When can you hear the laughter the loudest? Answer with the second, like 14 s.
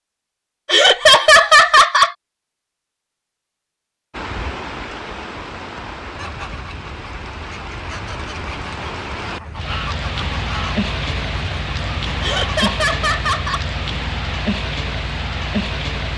1 s.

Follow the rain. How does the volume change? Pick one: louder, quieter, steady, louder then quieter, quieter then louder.
louder.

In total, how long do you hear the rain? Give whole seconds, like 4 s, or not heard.
12 s.